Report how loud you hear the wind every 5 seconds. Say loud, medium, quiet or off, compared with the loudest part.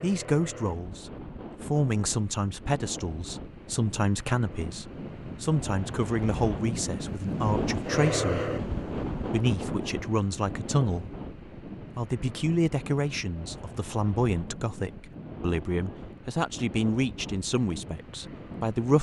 medium, loud, medium, medium.